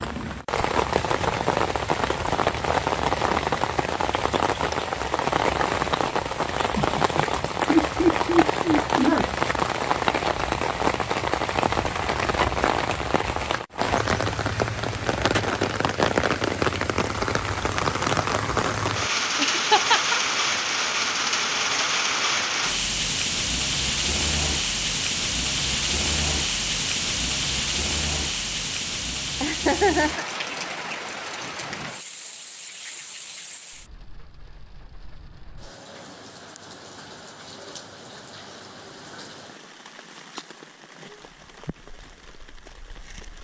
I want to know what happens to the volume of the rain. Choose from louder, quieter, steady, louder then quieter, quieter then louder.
quieter.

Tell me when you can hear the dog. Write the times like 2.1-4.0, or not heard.
not heard.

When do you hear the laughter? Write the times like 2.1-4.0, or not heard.
6.8-9.3, 19.4-20.2, 29.4-30.3.